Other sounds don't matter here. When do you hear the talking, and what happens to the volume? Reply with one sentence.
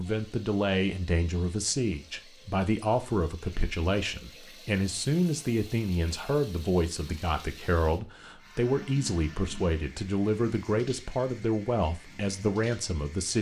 You can hear the talking from 0.0 to 13.3 s, at a steady volume.